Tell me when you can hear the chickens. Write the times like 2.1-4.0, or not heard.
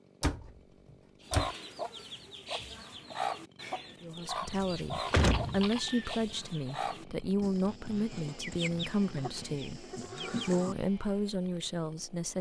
1.2-10.8.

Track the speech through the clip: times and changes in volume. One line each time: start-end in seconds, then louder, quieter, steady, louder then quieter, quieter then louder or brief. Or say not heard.
4.0-12.3 steady.